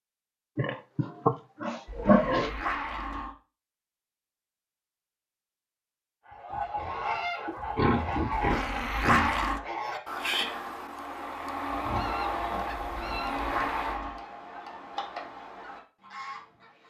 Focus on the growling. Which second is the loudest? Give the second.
9 s.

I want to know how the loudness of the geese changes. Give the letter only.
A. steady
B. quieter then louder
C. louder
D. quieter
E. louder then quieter
D.